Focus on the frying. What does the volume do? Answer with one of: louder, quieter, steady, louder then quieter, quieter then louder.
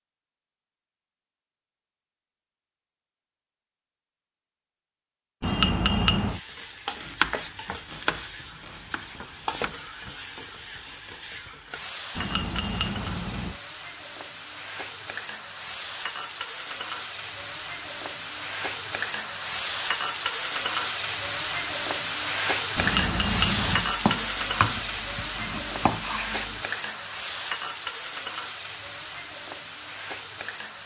louder then quieter.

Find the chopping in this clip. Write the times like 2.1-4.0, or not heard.
7.0-9.7, 23.8-26.6.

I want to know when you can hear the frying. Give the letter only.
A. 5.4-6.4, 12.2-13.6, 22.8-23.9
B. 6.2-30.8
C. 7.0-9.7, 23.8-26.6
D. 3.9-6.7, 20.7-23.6
B.